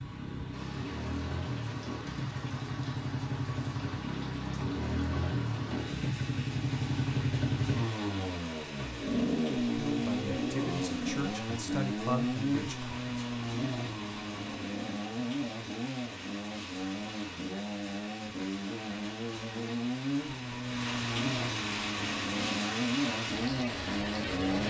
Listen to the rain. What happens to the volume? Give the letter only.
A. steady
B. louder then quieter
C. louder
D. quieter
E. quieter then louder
C.